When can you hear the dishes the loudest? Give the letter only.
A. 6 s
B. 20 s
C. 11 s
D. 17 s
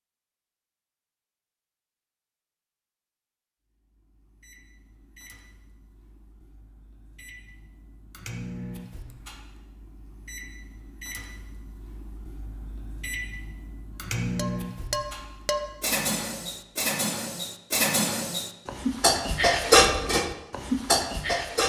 B.